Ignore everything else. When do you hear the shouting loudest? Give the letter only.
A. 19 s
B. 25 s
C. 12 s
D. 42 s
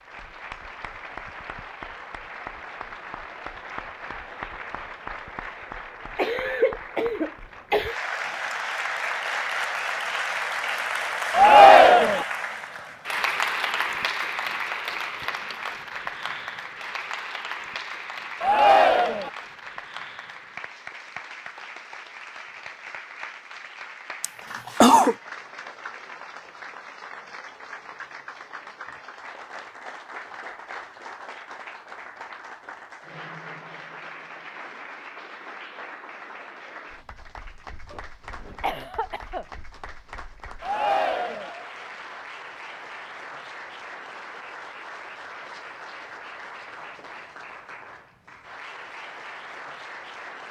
C.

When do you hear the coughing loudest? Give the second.
25 s.